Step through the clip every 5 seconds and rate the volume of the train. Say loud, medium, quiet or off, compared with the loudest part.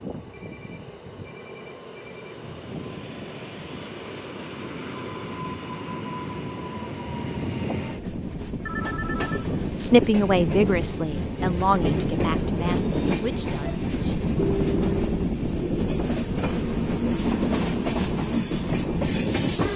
quiet, medium, loud, loud.